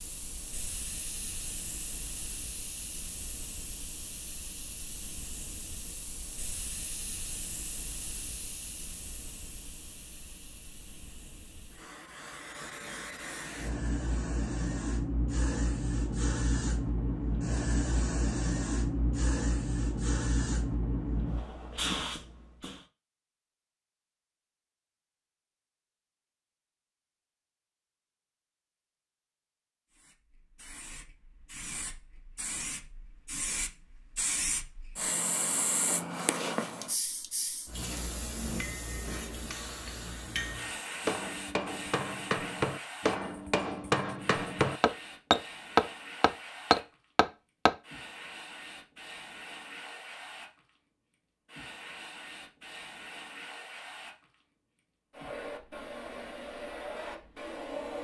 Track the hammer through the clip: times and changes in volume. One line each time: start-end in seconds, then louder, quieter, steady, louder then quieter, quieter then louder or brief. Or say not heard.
38.2-47.8 louder.